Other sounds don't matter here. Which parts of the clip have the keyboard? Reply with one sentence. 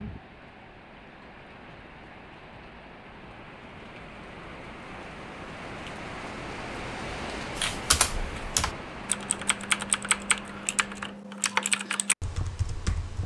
The keyboard can be heard from 7.5 to 13.2 s.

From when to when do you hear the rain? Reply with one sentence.
The rain can be heard from 0.0 to 11.2 s.